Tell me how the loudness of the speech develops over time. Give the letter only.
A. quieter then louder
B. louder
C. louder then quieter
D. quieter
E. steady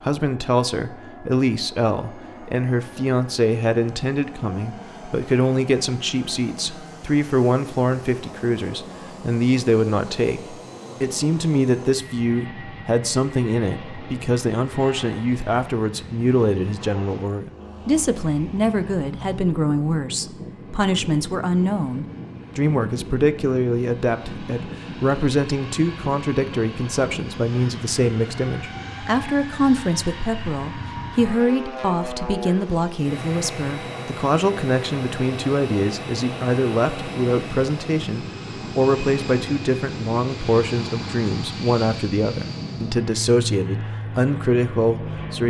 E.